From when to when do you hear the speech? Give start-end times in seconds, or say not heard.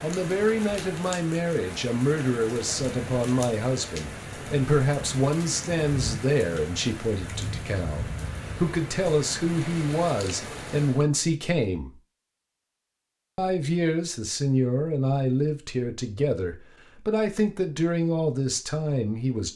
0.0-11.9, 13.3-19.5.